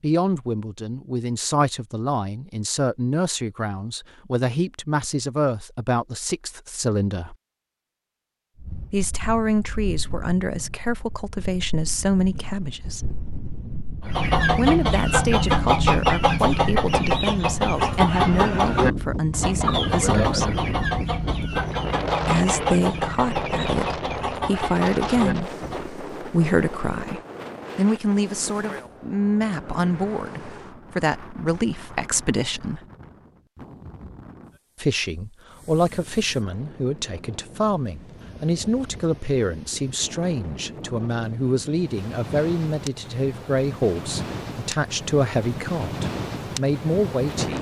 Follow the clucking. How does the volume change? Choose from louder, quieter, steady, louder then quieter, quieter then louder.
quieter.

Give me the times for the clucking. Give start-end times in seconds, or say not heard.
14.1-25.9.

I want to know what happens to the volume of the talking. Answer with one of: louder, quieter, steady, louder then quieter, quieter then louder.
steady.